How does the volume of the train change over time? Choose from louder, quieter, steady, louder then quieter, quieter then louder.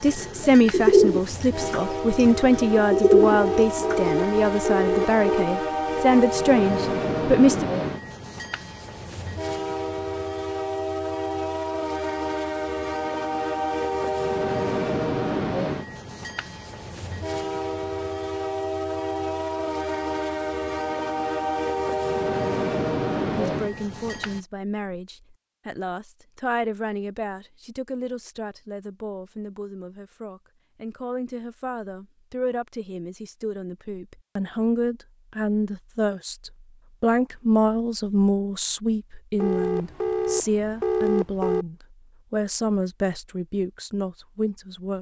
steady.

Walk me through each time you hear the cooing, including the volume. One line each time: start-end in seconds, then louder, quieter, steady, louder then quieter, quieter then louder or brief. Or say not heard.
0.0-4.1 quieter then louder.